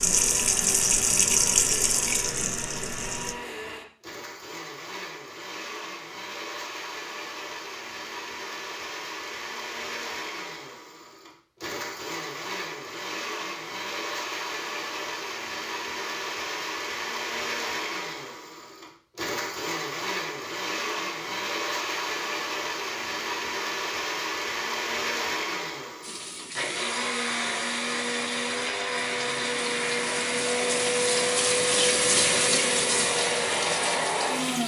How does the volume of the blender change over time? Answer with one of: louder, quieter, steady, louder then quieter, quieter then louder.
louder.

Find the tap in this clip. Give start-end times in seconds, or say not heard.
0.0-3.4, 26.0-34.6.